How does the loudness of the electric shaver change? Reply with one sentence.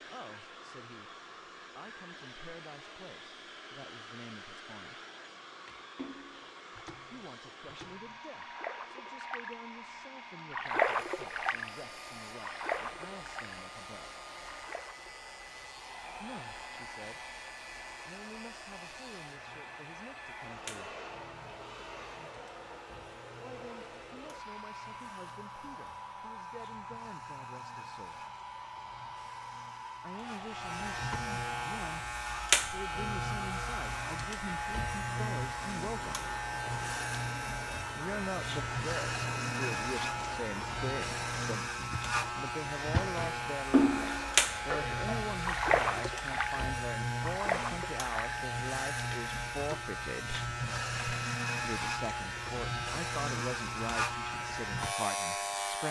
The volume of the electric shaver goes up.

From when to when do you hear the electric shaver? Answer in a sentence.
The electric shaver can be heard from 10.8 to 55.8 s.